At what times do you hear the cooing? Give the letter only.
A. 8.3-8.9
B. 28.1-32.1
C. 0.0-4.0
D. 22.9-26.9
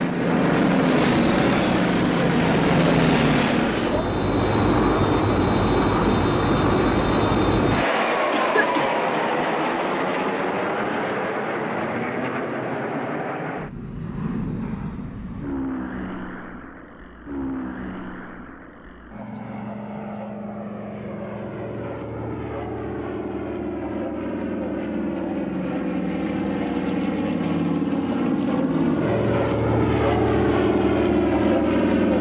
C.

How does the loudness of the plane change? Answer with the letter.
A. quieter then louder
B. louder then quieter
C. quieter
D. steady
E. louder
A.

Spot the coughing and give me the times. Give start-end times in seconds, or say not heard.
8.3-8.9.